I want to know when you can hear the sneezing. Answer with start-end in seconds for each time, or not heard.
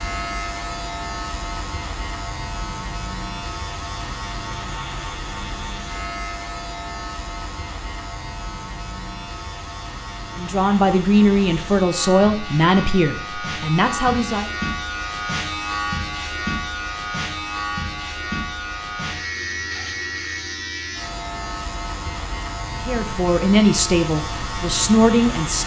not heard.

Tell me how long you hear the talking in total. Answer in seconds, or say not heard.
7 s.